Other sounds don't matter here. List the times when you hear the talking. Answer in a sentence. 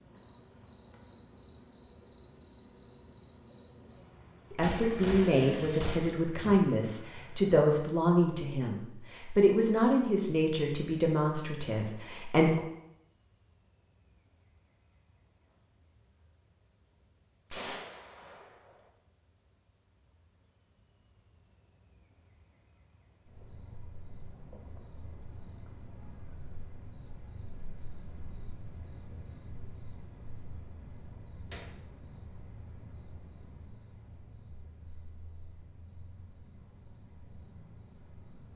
You can hear the talking from 4.5 to 12.6 s.